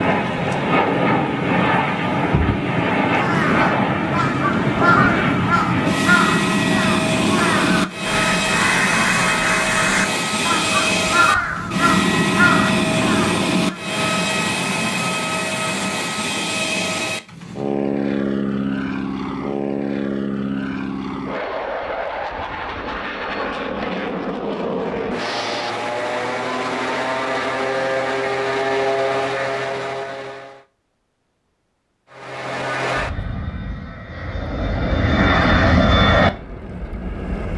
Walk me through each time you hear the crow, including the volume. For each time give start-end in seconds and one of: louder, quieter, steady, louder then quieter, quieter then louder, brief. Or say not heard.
3.1-13.8 steady.